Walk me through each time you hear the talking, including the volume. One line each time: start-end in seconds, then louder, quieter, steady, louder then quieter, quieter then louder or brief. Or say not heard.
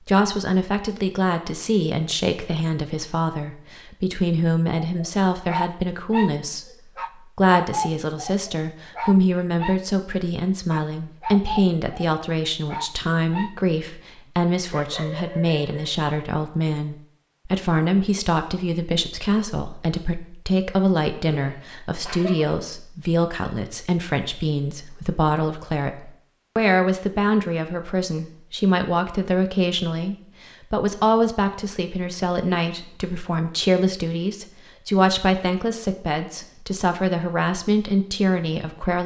0.1-39.0 steady.